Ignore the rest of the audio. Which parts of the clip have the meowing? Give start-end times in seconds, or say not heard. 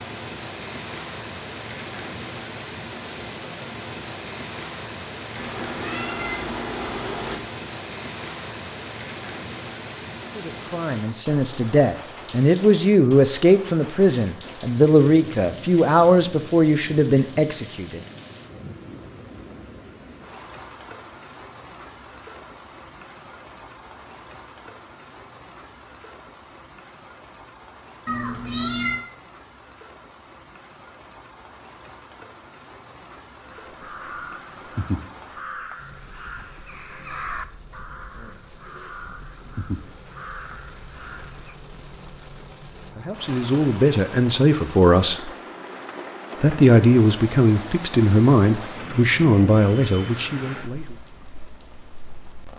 5.3-7.3, 28.1-29.1.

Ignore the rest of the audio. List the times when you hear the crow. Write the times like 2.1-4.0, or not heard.
33.5-41.5.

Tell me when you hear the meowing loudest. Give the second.
29 s.